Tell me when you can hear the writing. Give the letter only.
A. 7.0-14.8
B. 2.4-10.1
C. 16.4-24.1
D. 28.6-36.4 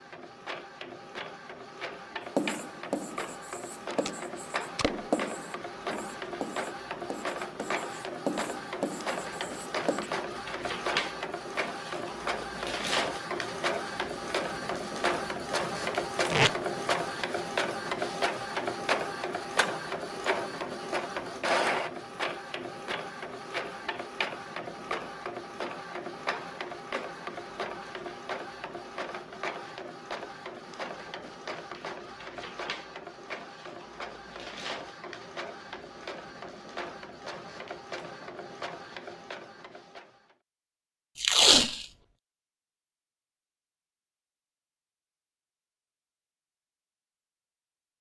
B.